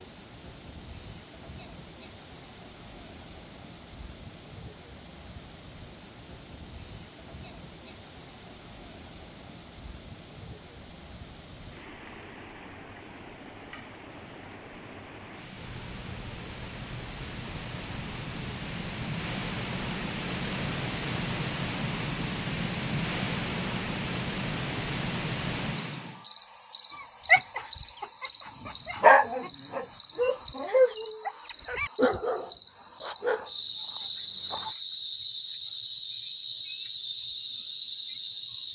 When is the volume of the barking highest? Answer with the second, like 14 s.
29 s.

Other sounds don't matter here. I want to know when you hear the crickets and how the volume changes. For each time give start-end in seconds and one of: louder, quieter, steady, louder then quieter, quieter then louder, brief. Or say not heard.
10.6-38.7 steady.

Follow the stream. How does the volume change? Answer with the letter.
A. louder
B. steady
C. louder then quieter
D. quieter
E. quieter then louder
A.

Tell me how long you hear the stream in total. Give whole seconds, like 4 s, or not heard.
26 s.